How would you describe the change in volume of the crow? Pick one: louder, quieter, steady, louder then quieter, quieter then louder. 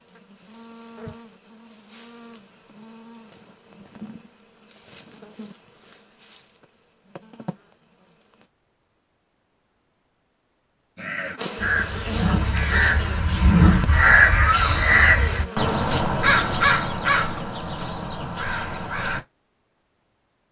louder then quieter.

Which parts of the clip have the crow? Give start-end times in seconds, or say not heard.
10.9-19.2.